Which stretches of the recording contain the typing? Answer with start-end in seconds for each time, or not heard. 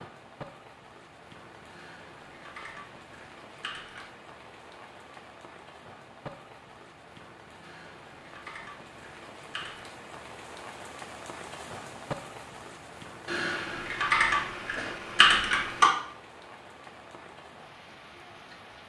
1.7-4.1, 7.6-9.8, 13.2-15.9.